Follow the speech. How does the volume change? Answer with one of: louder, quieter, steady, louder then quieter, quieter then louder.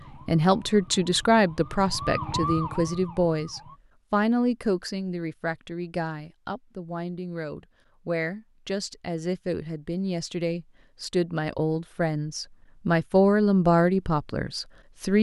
quieter then louder.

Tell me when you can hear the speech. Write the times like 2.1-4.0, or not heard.
0.2-15.1.